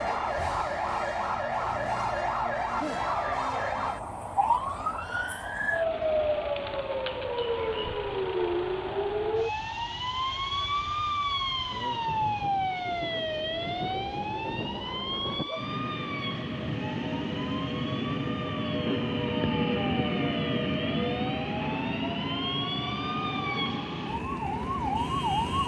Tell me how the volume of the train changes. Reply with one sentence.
The volume of the train goes up.